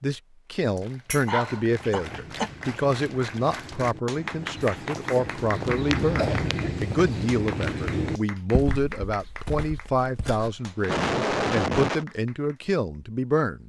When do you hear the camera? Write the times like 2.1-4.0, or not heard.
not heard.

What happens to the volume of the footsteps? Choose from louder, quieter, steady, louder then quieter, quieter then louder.
louder then quieter.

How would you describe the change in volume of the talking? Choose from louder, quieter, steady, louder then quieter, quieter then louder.
steady.